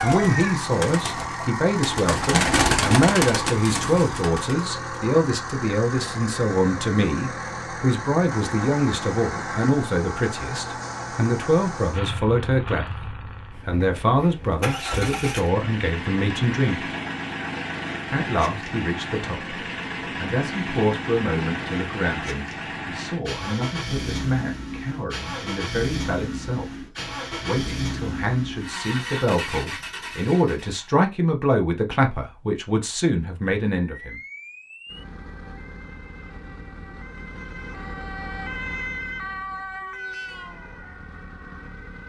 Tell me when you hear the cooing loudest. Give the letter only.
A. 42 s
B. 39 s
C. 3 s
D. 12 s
C.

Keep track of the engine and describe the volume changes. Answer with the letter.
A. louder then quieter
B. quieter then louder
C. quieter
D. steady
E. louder
D.